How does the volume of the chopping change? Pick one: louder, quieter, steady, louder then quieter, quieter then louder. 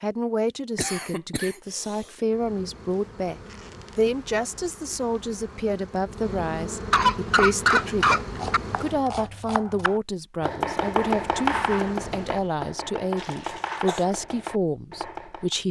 louder then quieter.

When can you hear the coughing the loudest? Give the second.
8 s.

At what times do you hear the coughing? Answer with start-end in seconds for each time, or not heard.
0.8-2.0, 6.9-8.6, 13.2-14.0.